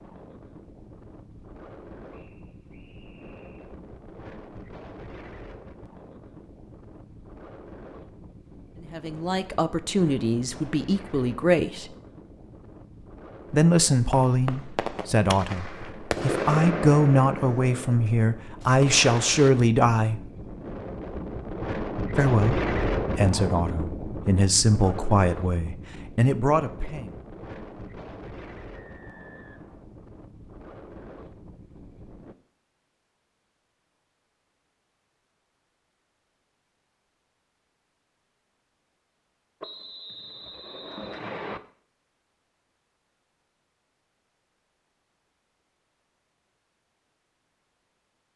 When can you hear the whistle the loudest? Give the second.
41 s.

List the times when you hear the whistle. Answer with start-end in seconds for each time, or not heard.
2.1-3.8, 28.8-29.9, 39.6-41.6.